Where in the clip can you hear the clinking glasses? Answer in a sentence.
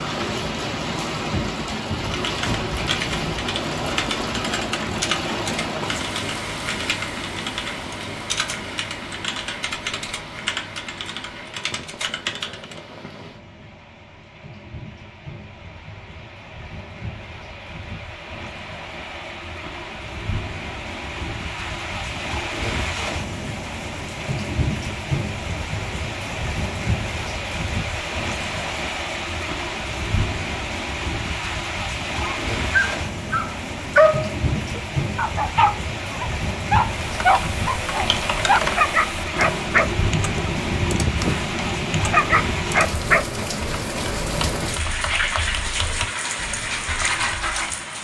The clinking glasses can't be heard in this clip.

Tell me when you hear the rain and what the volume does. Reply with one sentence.
The rain can be heard from 0.0 to 48.0 s, getting quieter then louder.